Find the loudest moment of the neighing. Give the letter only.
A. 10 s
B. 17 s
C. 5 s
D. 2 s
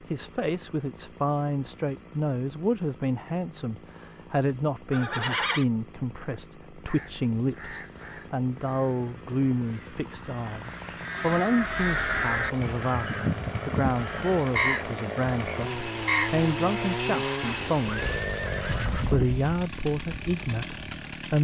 C.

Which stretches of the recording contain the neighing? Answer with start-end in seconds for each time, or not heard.
4.9-5.7, 17.9-19.2.